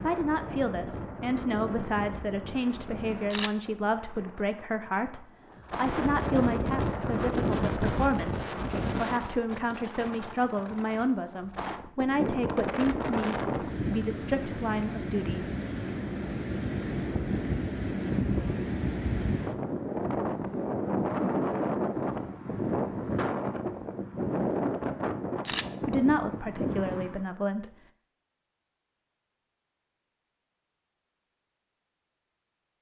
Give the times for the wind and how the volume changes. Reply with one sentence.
The wind can be heard from 0.0 to 27.2 s, getting louder.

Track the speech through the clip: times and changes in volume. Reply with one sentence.
You can hear the speech from 0.0 to 15.4 s, at a steady volume; and briefly from 25.8 to 27.8 s.